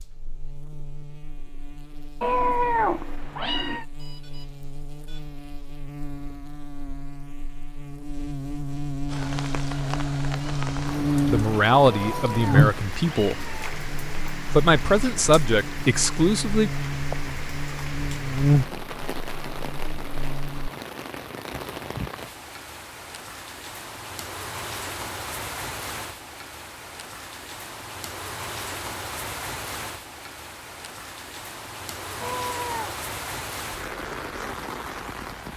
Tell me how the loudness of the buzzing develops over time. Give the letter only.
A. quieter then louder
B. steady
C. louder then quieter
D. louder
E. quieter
D.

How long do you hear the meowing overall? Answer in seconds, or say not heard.
4 s.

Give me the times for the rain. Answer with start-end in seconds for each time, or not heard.
9.1-35.5.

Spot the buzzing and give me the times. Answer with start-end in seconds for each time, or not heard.
0.0-20.7.